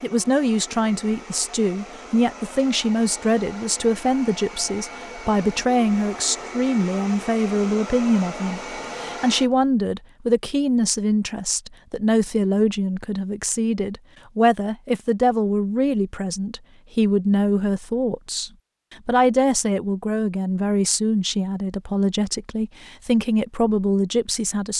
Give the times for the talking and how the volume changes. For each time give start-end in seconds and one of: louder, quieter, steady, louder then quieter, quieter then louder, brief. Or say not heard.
0.0-24.7 steady.